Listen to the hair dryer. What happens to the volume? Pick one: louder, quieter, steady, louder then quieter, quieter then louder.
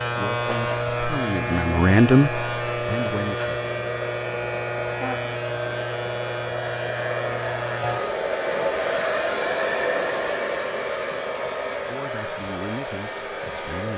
louder then quieter.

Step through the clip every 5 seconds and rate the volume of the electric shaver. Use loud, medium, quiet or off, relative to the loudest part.
loud, loud, medium.